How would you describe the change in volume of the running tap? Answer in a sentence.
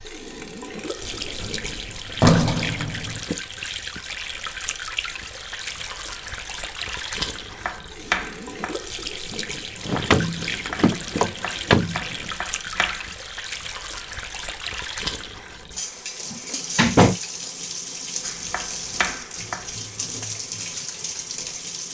The loudness of the running tap stays about the same.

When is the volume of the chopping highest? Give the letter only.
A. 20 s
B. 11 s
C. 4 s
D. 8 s
D.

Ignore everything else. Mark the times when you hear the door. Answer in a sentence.
You can hear the door from 1.0 to 3.2 s, from 9.8 to 12.3 s and from 16.3 to 17.1 s.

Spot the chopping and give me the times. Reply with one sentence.
You can hear the chopping from 7.5 to 13.2 s and from 18.2 to 20.2 s.